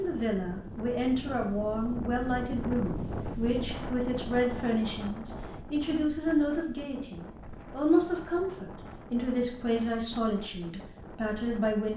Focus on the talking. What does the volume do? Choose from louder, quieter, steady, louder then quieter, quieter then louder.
steady.